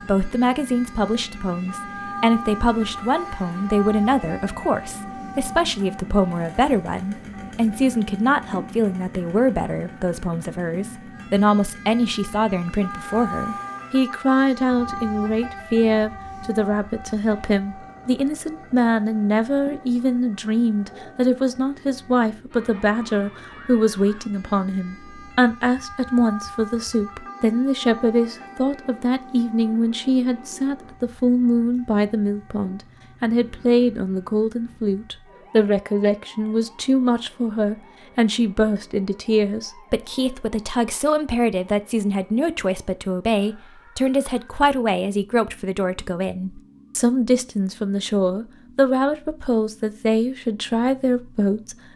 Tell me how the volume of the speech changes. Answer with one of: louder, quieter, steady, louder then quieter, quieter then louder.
steady.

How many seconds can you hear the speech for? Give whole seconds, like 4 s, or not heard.
52 s.